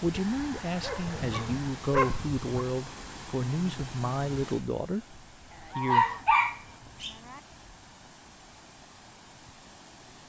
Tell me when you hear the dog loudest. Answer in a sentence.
The volume of the dog peaks at 6 seconds.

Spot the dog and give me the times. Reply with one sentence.
You can hear the dog from 0.8 to 2.4 s and from 5.8 to 7.1 s.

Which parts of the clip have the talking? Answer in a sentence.
You can hear the talking from 0.0 to 6.2 s.